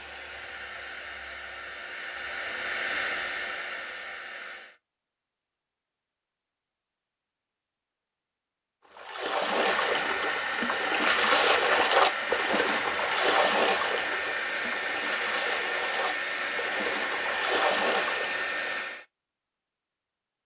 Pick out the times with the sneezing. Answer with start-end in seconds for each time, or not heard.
not heard.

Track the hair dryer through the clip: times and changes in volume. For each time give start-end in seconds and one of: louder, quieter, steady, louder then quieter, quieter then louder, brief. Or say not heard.
0.0-4.8 louder then quieter
9.4-19.1 steady.